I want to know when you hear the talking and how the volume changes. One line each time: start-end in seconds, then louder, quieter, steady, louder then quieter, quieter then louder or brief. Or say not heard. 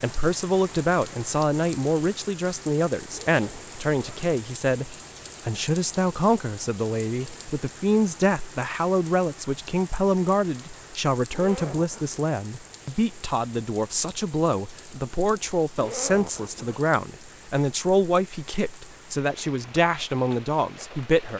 0.0-21.3 steady.